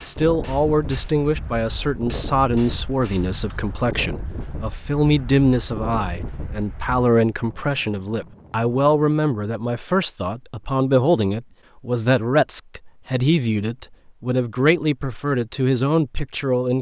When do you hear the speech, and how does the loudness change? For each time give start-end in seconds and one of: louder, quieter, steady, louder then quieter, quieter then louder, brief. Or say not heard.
0.1-16.7 steady.